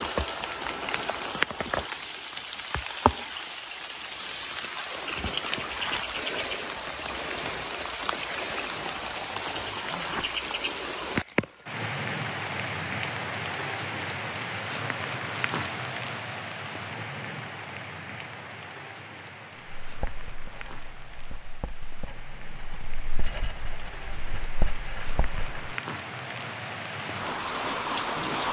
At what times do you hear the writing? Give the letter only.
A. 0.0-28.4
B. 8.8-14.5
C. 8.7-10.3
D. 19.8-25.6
D.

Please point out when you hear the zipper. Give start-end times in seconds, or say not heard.
8.7-10.3.